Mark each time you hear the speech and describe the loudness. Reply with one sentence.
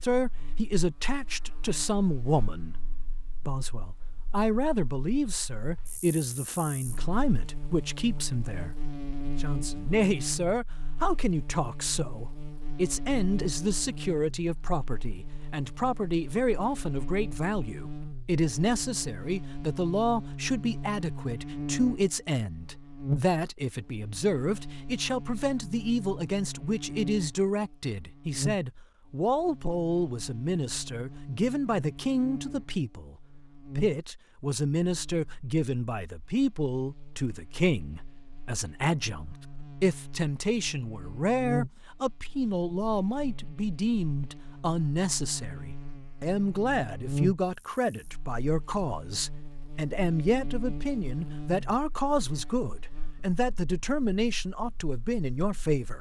You can hear the speech from 0.0 to 55.9 s, at a steady volume.